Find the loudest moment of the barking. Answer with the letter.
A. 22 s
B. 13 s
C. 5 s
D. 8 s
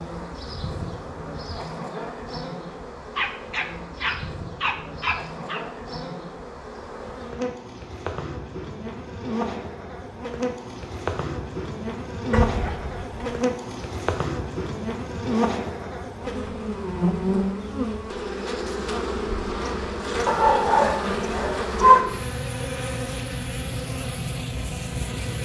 A.